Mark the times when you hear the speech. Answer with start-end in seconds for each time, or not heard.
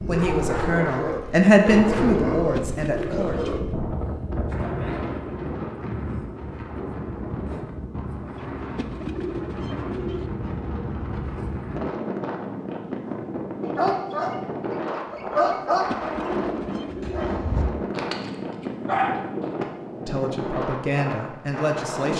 0.0-3.5, 20.1-22.1.